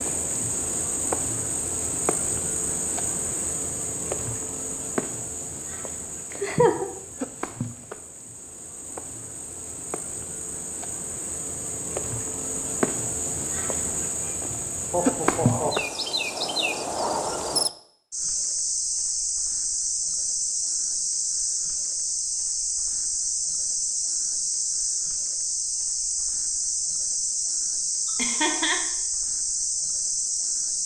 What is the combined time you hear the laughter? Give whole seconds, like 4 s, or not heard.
2 s.